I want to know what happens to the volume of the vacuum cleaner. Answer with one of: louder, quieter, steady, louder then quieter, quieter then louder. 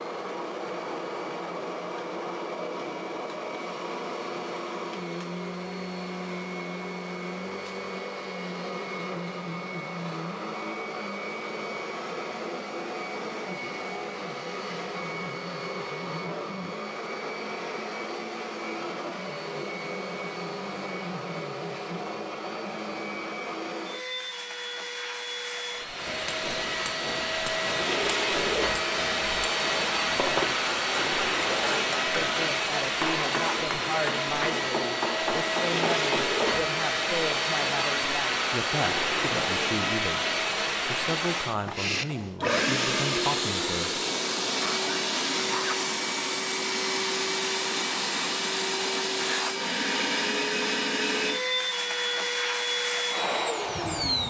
louder.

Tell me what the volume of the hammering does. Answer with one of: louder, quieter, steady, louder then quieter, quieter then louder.
louder.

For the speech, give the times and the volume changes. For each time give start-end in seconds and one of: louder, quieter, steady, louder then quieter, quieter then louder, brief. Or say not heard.
32.1-44.0 steady.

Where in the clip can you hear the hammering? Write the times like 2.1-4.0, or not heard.
26.0-36.6.